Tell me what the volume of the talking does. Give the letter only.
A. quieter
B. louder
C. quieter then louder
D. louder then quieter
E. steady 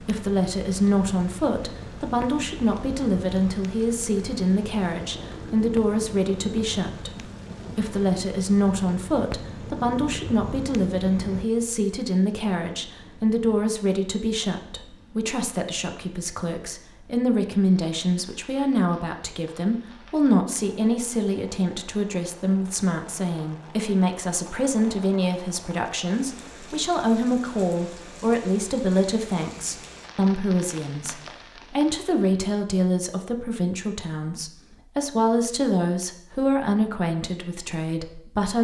E.